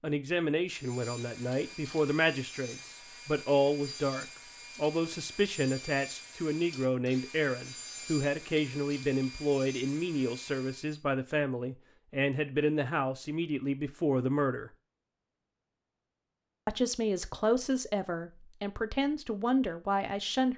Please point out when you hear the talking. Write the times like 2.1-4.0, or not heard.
0.0-14.7, 16.6-20.5.